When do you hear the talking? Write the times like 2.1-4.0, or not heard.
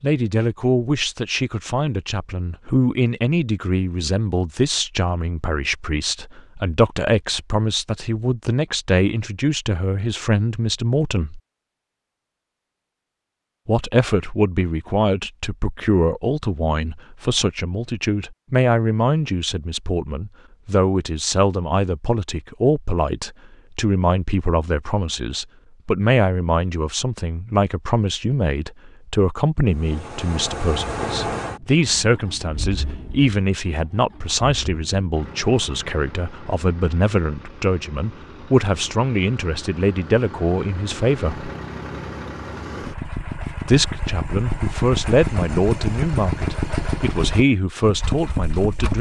0.0-11.4, 13.7-41.5, 43.6-48.9.